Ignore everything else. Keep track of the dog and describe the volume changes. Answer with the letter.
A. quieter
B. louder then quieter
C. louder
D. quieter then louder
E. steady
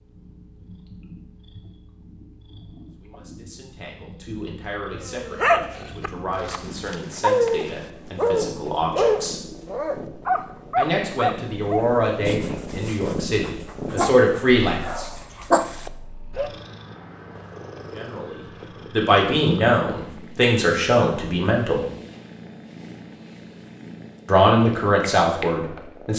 D.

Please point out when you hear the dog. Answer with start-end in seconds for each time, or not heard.
5.0-16.5.